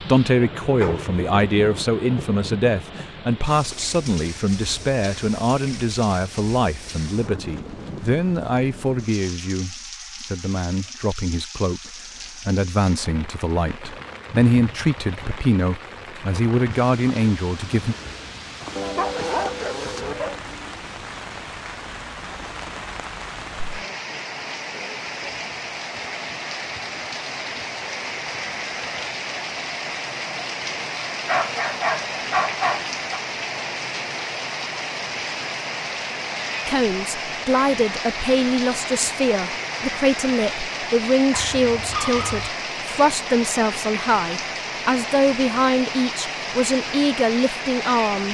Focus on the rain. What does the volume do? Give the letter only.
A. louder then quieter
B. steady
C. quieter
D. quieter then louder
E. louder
E.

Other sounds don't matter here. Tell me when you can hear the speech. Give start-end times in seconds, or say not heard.
0.1-17.9, 36.6-48.2.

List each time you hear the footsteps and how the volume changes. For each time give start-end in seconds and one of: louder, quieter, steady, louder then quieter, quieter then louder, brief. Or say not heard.
not heard.